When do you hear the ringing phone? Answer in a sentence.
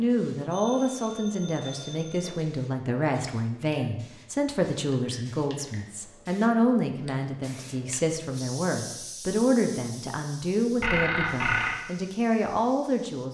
You can hear the ringing phone from 0.5 to 2.4 s and from 10.8 to 11.8 s.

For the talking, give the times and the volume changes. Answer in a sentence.
You can hear the talking from 0.0 to 13.2 s, at a steady volume.